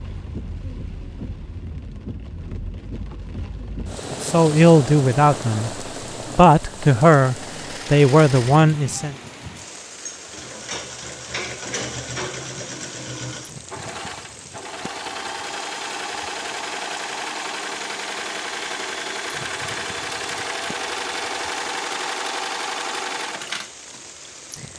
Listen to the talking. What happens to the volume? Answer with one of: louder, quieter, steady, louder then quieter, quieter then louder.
quieter then louder.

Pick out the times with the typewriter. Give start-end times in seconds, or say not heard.
not heard.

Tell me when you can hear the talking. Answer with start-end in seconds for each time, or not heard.
4.1-9.2.